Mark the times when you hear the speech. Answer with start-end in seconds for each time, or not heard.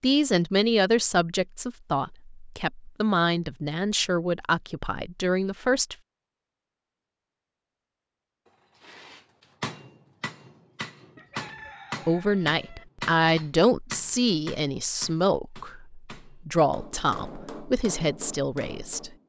0.0-6.0, 12.1-19.1.